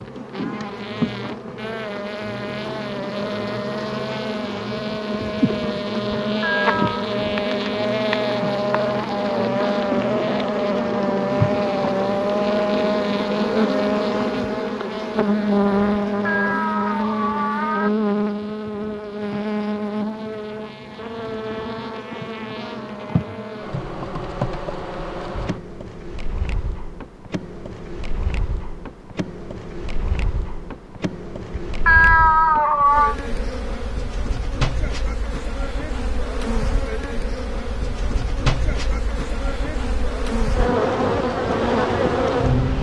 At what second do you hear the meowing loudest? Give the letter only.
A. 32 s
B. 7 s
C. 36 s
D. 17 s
A.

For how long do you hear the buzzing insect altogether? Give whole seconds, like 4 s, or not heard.
43 s.